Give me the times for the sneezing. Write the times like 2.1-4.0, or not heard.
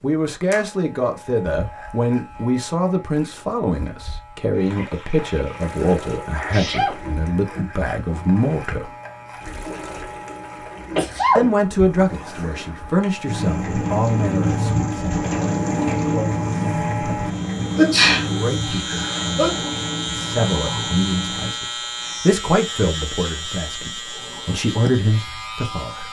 6.5-7.1, 10.8-11.4, 17.8-19.6.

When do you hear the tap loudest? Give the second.
16 s.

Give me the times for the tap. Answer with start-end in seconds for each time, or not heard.
4.5-21.6.